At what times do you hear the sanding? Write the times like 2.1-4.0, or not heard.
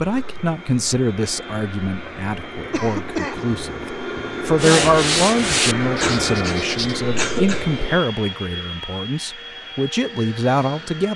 4.5-7.0.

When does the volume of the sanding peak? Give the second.
5 s.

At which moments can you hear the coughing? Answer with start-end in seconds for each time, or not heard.
2.7-3.5, 6.0-7.7.